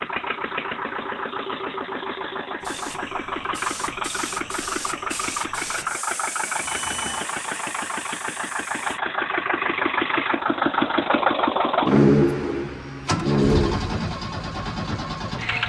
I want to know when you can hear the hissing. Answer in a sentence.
The hissing can be heard from 2.6 to 9.0 s.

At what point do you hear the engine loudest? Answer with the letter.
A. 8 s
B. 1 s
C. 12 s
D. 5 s
C.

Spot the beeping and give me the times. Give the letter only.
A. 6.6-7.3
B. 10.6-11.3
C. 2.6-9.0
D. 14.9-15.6
A.